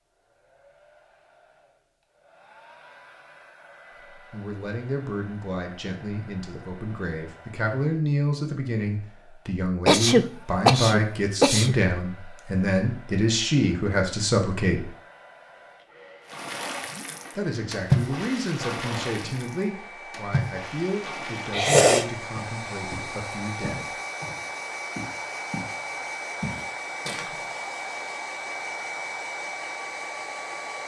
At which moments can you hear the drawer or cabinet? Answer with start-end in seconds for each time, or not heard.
not heard.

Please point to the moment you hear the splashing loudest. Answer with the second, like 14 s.
18 s.